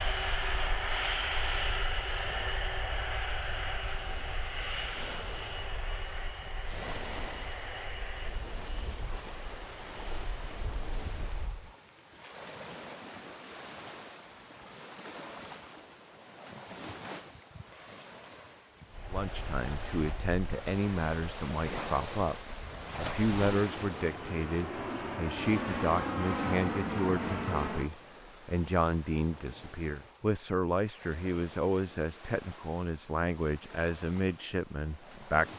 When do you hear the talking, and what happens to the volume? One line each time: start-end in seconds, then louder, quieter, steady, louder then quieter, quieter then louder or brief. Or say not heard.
19.1-35.5 steady.